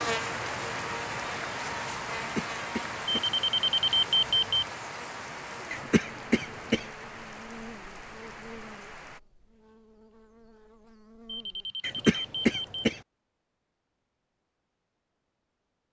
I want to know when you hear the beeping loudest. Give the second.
4 s.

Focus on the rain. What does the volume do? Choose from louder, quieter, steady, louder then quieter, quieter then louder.
quieter.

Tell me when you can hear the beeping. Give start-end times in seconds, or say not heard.
3.0-4.7, 11.2-12.8.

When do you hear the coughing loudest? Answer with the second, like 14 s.
12 s.